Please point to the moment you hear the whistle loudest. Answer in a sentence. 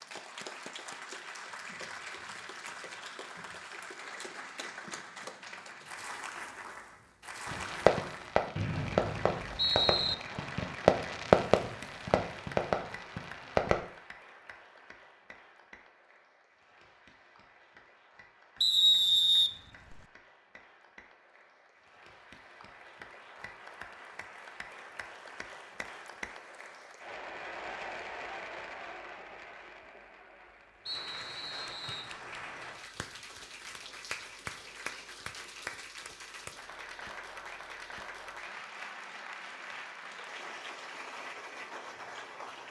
The loudest moment of the whistle is at 19 seconds.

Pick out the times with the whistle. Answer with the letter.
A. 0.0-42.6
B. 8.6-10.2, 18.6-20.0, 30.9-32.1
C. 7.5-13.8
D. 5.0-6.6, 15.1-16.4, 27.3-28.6
B.